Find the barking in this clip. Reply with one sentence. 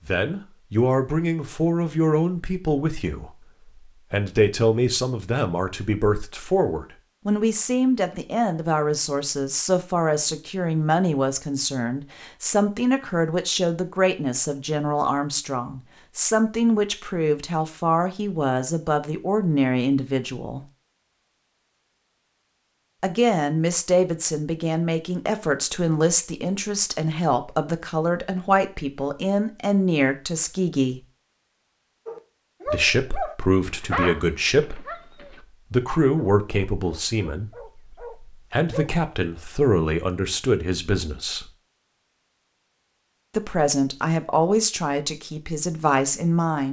The barking can be heard from 32.0 to 38.9 s.